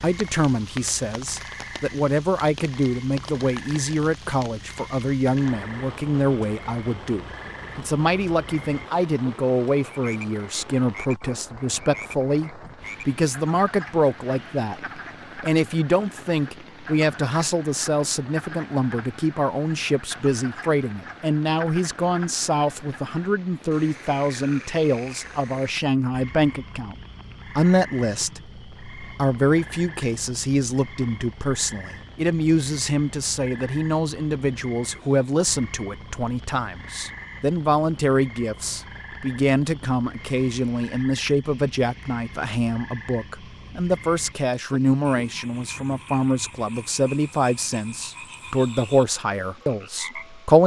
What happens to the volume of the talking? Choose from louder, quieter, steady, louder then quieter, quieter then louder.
steady.